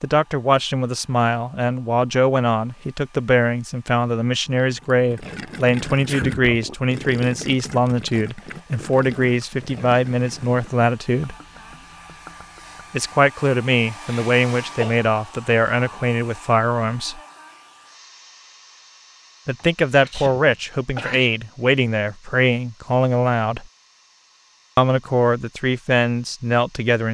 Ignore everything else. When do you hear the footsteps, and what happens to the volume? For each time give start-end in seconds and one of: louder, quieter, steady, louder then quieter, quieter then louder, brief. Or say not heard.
not heard.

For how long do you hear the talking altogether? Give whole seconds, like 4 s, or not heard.
22 s.